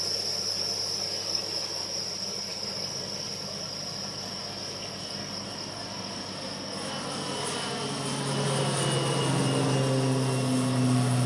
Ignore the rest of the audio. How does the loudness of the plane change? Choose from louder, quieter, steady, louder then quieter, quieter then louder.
louder.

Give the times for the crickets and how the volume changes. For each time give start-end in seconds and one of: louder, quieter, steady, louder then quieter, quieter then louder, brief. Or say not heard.
0.0-11.2 quieter.